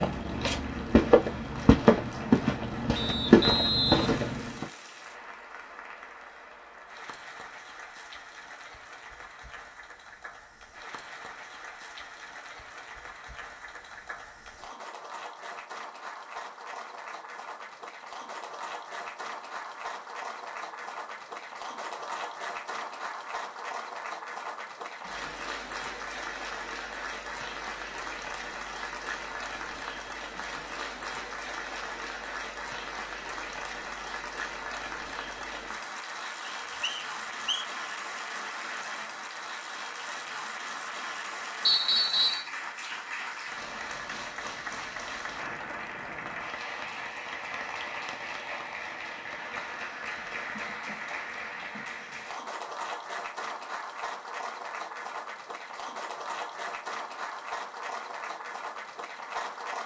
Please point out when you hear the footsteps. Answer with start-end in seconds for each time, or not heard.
0.0-4.7.